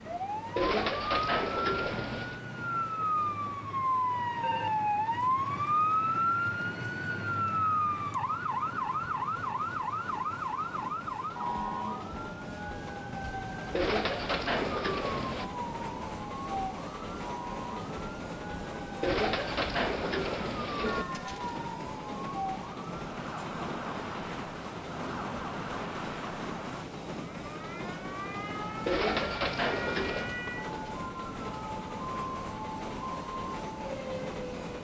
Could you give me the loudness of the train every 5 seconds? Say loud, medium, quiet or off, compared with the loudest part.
medium, medium, loud, loud, loud, loud, loud.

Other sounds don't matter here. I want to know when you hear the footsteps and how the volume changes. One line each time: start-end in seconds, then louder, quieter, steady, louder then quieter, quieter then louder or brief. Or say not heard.
not heard.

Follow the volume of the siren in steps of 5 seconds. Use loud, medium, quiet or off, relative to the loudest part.
loud, loud, medium, medium, medium, medium, medium.